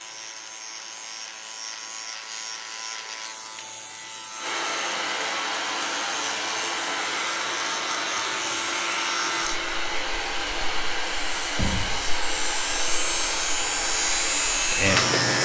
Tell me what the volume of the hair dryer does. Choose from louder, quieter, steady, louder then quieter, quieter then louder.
louder.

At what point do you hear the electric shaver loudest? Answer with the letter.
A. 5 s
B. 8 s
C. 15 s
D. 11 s
C.